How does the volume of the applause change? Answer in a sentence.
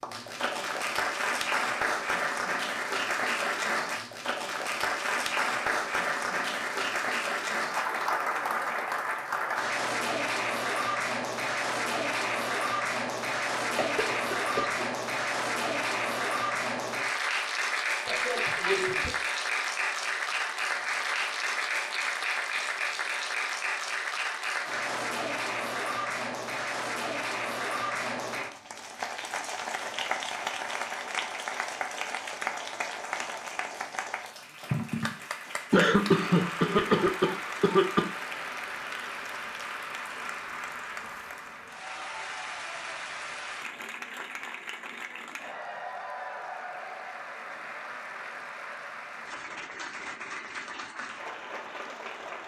The loudness of the applause goes down.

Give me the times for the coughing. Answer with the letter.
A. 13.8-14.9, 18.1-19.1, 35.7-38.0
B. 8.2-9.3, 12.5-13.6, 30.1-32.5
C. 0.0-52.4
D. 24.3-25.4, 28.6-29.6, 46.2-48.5
A.